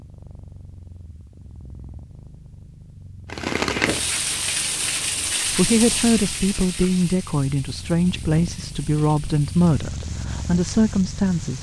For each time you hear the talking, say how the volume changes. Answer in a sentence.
You can hear the talking from 5.5 to 11.5 s, at a steady volume.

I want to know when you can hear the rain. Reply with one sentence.
You can hear the rain from 3.2 to 11.5 s.